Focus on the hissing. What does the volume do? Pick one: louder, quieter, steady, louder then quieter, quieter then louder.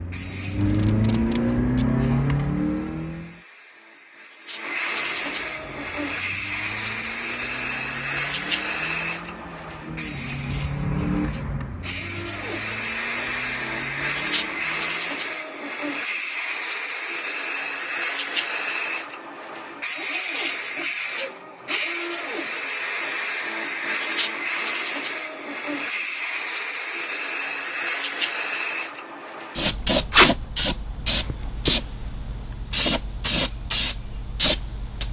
louder.